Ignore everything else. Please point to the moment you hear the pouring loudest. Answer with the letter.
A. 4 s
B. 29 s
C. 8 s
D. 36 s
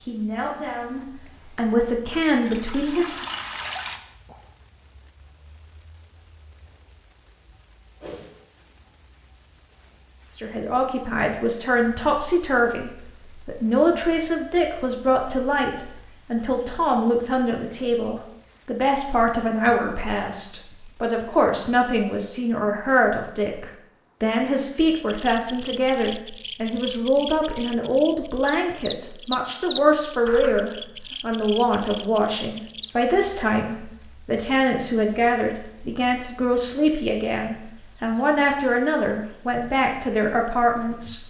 A.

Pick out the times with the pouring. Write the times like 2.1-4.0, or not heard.
2.5-4.0.